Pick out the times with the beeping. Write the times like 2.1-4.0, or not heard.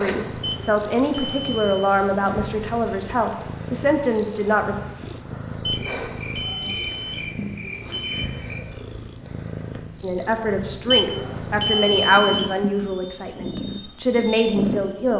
0.4-1.9, 5.7-8.3, 10.9-12.8.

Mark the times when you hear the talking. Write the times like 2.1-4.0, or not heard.
0.0-4.8, 10.0-15.1.